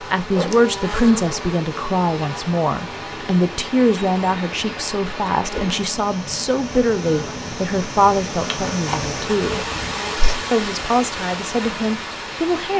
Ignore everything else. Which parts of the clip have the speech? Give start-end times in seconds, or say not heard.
0.0-9.7, 10.5-12.7.